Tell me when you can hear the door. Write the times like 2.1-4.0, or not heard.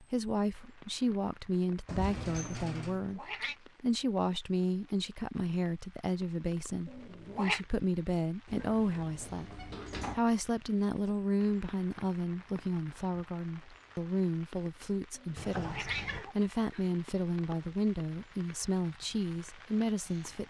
1.9-3.0, 8.4-10.2, 15.3-16.2.